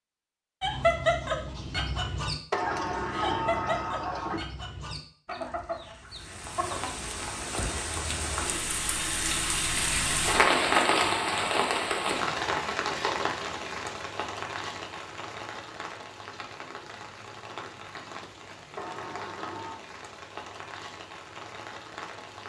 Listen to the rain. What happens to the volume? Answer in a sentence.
The volume of the rain goes up, then down.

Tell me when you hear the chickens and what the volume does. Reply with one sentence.
The chickens can be heard from 0.6 to 7.0 s, getting quieter.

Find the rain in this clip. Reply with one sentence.
The rain can be heard from 6.0 to 22.4 s.